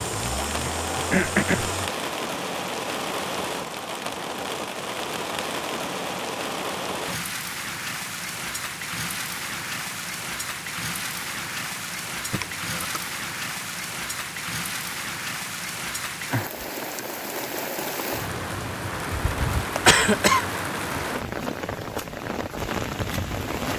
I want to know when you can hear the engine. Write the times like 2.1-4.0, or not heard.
0.0-1.9.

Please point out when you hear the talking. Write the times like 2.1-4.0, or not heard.
not heard.